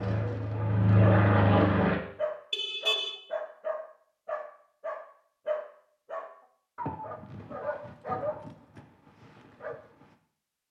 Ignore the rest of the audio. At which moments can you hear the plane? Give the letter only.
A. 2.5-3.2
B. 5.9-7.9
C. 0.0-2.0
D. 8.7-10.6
C.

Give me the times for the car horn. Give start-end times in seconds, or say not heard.
2.5-3.2.